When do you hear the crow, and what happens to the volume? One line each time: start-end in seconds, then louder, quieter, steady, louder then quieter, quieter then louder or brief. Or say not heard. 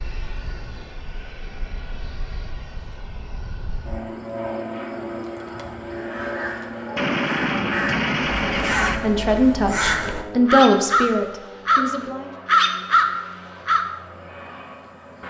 5.9-13.9 louder.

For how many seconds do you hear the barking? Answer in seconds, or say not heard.
not heard.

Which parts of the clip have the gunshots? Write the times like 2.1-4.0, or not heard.
7.0-9.0.